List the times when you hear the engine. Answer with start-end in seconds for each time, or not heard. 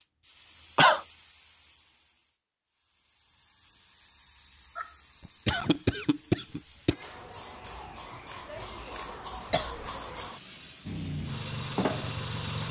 10.8-12.6.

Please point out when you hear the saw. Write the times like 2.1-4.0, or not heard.
not heard.